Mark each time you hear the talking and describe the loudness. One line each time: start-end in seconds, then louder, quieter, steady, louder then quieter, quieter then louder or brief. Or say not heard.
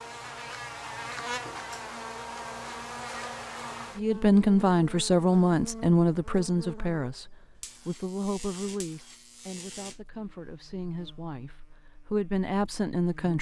4.0-13.3 quieter then louder.